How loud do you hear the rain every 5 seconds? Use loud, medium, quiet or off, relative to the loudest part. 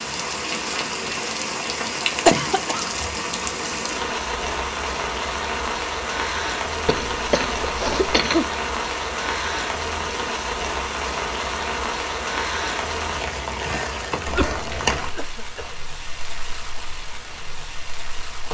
loud, loud, loud, medium.